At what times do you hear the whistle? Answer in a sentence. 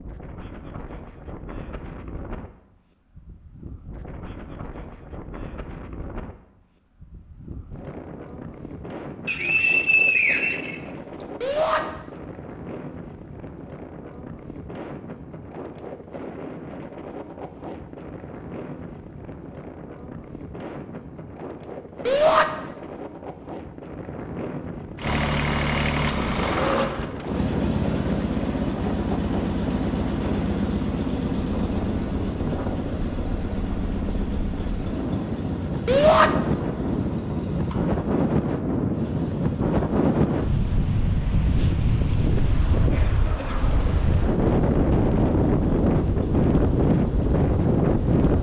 You can hear the whistle from 9.2 to 11.2 s.